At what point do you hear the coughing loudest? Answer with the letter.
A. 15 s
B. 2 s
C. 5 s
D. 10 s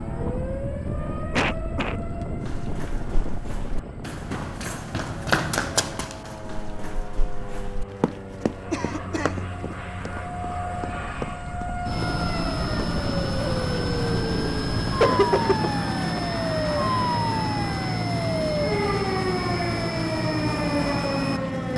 A.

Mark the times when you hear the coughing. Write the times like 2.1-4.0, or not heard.
1.3-2.0, 8.7-9.4, 15.0-15.7.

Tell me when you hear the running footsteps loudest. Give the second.
5 s.